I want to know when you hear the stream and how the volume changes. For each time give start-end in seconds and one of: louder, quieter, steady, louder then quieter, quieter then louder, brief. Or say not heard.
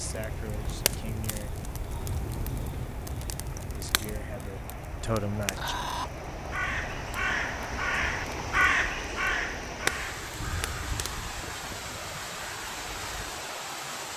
0.0-14.1 louder.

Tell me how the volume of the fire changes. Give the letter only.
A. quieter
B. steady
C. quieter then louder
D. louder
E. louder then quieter
C.